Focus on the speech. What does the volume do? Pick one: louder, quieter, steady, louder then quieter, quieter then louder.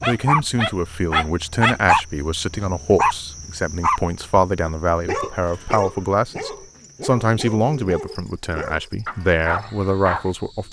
steady.